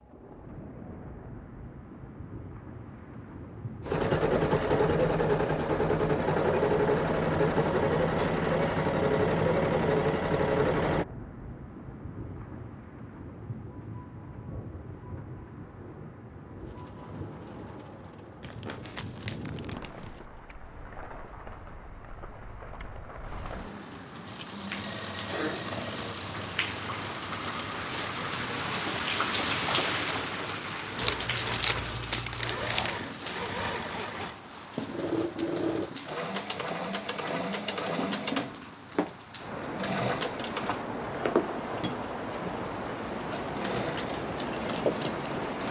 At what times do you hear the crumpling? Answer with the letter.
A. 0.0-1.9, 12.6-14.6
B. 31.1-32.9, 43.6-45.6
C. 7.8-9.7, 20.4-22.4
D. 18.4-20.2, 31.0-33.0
D.